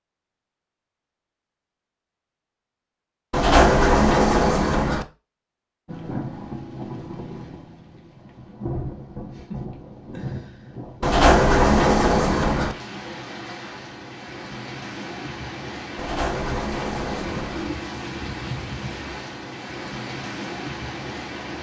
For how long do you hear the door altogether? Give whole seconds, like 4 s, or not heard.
5 s.